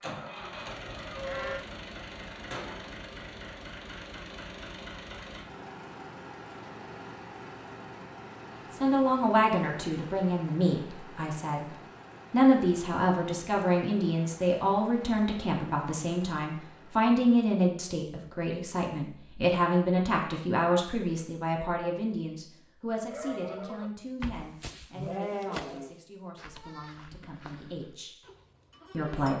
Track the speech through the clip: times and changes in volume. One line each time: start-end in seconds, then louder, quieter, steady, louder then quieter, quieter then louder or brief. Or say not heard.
8.7-28.1 quieter
28.9-29.3 brief.